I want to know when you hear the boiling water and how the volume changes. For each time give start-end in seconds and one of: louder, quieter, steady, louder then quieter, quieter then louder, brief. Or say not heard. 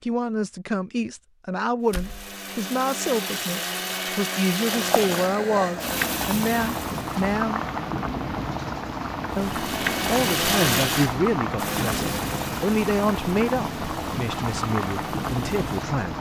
4.5-16.1 steady.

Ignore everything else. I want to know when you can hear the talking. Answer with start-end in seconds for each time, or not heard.
0.0-7.6, 9.3-16.1.